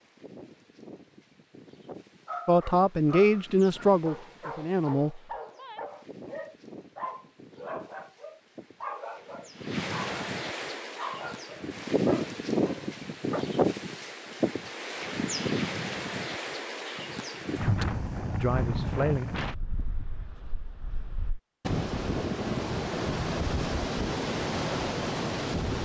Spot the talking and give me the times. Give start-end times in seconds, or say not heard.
2.5-5.2, 17.6-19.2.